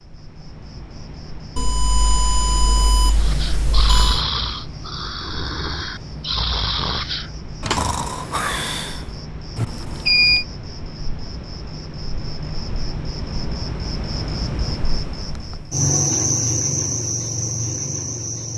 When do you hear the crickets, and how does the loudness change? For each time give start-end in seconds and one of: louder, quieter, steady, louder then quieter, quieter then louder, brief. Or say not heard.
0.0-18.5 louder.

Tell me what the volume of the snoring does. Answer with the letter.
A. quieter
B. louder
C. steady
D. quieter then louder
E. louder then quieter
D.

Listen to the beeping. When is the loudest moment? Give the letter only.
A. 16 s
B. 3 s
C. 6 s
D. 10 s
D.